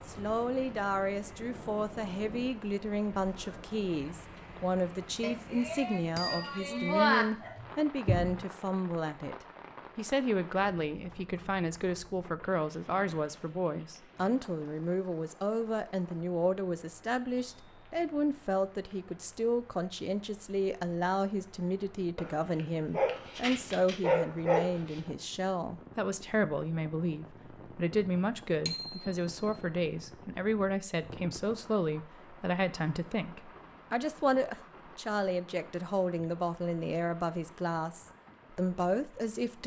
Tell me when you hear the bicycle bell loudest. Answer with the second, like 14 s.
7 s.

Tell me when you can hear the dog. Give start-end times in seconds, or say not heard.
7.4-8.3, 22.1-25.0.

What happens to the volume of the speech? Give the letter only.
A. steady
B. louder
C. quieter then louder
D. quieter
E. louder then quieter
A.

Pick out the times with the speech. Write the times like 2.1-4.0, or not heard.
0.1-39.6.